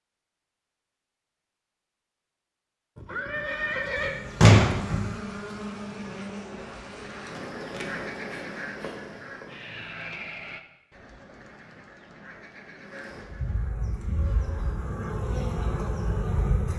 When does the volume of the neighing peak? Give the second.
4 s.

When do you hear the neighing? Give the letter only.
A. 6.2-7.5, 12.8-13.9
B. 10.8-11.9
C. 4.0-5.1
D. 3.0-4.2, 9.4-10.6
D.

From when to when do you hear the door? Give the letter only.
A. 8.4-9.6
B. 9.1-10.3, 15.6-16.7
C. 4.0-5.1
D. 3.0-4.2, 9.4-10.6
C.